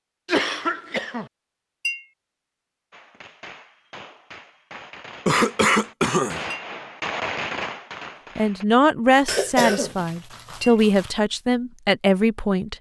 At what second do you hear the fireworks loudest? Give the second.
7 s.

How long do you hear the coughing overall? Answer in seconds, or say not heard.
4 s.